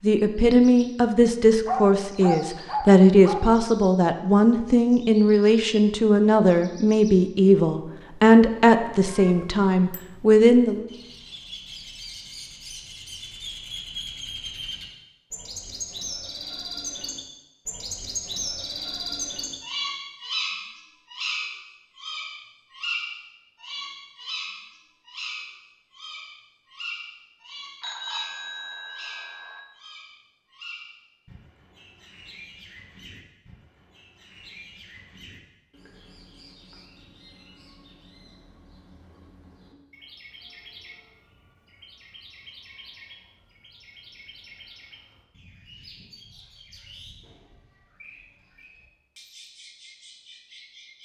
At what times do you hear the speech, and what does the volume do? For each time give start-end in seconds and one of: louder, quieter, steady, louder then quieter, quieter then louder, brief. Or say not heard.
0.0-10.8 steady.